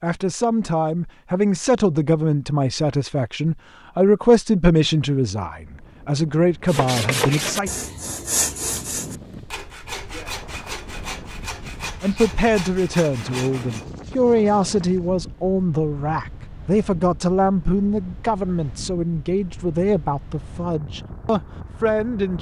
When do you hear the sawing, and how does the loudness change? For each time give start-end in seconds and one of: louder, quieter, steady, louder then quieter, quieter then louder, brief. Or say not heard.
6.7-13.8 quieter.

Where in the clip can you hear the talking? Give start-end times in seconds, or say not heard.
0.0-7.7, 12.0-22.3.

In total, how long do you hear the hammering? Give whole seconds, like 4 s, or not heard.
not heard.